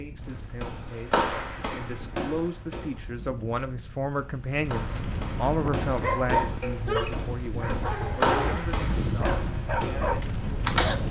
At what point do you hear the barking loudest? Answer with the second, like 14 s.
6 s.